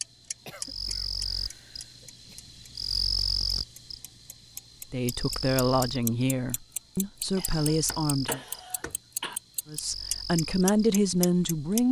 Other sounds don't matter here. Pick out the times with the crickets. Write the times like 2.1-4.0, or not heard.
0.0-11.8.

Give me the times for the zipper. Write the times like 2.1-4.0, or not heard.
not heard.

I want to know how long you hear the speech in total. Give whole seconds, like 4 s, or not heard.
6 s.